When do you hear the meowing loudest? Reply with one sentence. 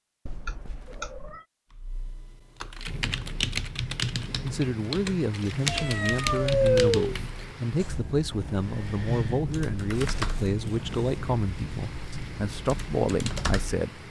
The volume of the meowing peaks at 7 seconds.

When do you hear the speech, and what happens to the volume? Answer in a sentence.
You can hear the speech from 4.4 to 14.0 s, at a steady volume.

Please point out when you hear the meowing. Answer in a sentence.
You can hear the meowing from 0.2 to 1.4 s, from 5.5 to 7.2 s and from 9.9 to 11.2 s.